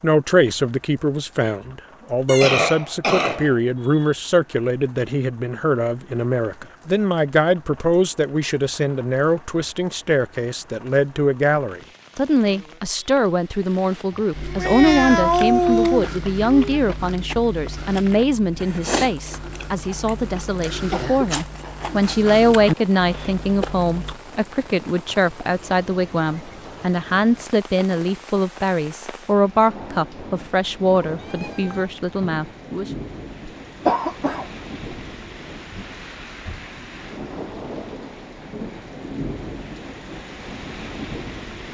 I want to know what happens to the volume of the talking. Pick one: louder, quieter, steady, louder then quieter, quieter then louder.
steady.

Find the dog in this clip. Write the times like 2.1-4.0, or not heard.
not heard.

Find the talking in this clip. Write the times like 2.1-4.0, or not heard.
0.0-32.9.